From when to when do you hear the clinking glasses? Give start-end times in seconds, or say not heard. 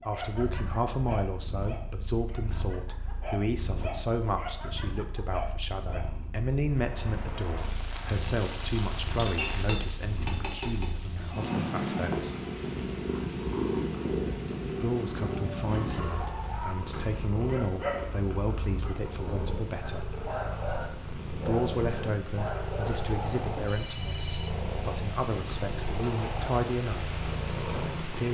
9.2-10.9.